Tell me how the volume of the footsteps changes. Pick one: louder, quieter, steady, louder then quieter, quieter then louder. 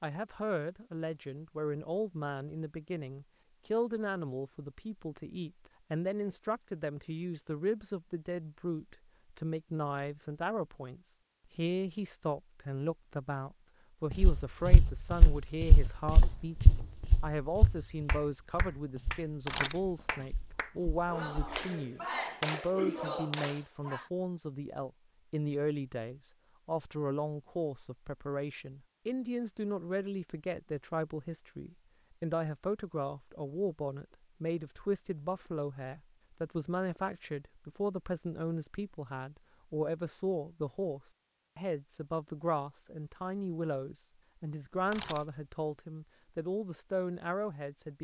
quieter.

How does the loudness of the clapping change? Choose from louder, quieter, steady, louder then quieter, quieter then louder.
louder.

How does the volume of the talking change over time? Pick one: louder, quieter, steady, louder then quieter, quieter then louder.
steady.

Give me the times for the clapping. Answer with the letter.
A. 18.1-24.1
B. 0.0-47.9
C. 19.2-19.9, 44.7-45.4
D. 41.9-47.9
A.